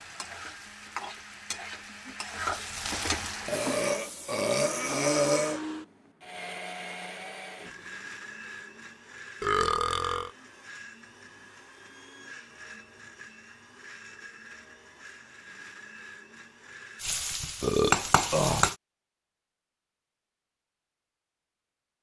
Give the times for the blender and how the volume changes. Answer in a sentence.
You can hear the blender from 0.0 to 17.1 s, getting louder then quieter.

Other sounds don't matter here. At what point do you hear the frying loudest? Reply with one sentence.
The loudest moment of the frying is at 18 seconds.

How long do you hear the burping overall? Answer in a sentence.
You can hear the burping for 4 seconds altogether.